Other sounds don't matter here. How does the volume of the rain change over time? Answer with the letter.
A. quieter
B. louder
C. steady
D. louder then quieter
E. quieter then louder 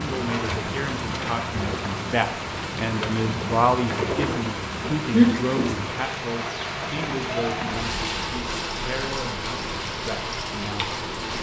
C.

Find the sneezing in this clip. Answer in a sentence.
You can hear the sneezing from 5.1 to 5.7 s.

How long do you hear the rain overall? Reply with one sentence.
The rain can be heard for 11 seconds in total.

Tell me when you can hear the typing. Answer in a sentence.
You can't hear the typing here.